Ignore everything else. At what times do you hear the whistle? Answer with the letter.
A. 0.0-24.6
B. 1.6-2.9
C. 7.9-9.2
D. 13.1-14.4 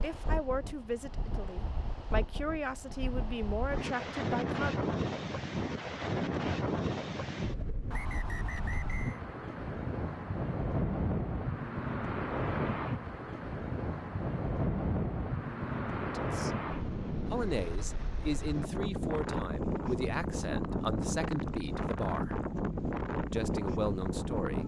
C.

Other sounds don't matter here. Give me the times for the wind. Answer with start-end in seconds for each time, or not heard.
0.0-24.6.